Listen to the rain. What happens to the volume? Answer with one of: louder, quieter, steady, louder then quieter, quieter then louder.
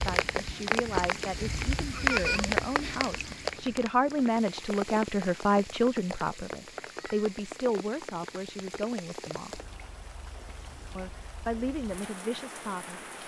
quieter.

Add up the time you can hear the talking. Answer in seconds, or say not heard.
12 s.